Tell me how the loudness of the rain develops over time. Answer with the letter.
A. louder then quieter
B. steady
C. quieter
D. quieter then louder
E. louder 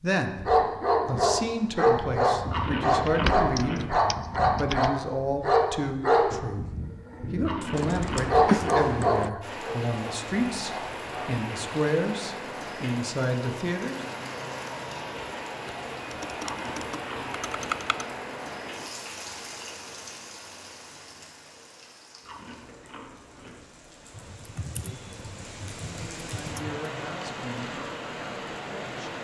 D.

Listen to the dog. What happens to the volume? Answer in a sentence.
The loudness of the dog goes down.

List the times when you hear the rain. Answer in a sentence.
The rain can be heard from 9.4 to 29.1 s.